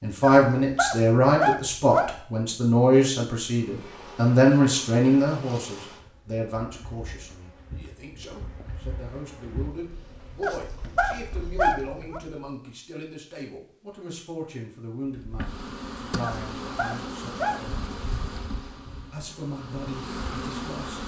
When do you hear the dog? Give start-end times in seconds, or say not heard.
0.2-2.2, 10.4-12.2, 16.2-17.6.